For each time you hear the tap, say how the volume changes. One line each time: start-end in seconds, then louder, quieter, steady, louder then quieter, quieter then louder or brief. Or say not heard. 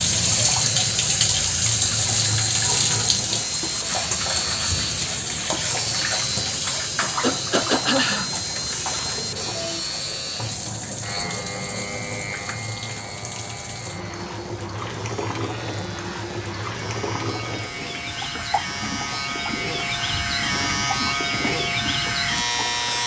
0.0-23.0 quieter.